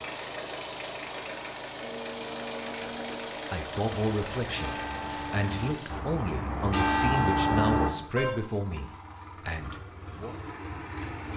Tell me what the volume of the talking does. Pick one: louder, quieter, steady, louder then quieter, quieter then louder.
quieter.